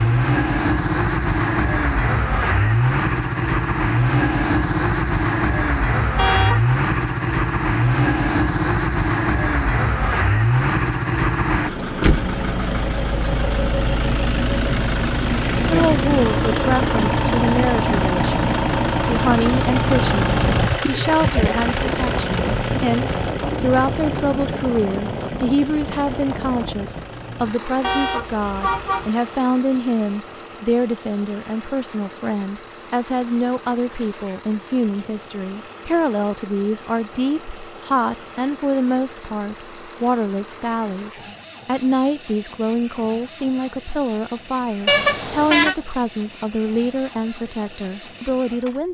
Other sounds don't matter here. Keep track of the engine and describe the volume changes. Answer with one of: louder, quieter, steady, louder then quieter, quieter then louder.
quieter.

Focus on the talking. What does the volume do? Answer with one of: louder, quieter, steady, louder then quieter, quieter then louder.
steady.